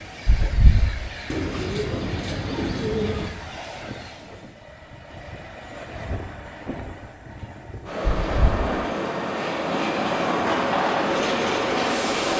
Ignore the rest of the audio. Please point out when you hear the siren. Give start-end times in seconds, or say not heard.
not heard.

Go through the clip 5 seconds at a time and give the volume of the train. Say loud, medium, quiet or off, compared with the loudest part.
quiet, medium, loud.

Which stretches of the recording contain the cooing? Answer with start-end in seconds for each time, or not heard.
1.2-3.3.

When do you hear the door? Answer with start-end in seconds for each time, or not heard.
0.2-0.9, 8.1-8.7.